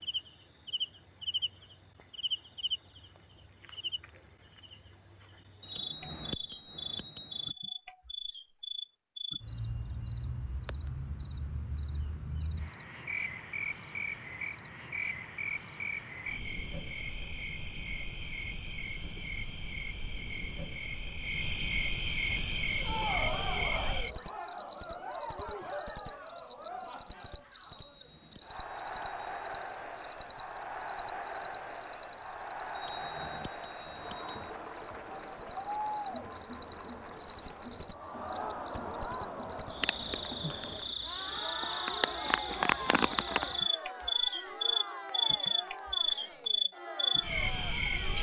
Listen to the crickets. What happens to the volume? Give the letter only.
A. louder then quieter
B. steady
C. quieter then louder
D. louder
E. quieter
D.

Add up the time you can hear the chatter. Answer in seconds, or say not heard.
26 s.